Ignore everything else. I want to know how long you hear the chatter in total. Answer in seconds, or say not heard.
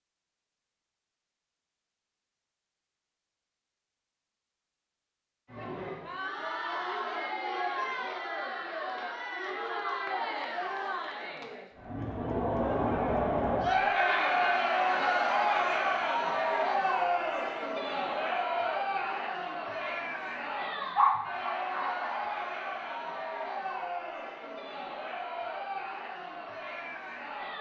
22 s.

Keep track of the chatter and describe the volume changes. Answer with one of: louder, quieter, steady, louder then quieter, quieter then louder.
louder then quieter.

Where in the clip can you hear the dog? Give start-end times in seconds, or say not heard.
20.9-22.2.